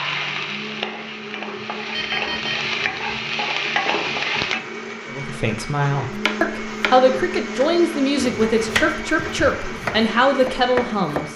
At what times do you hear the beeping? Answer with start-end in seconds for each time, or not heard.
1.9-3.2.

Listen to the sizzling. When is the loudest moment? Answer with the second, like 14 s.
4 s.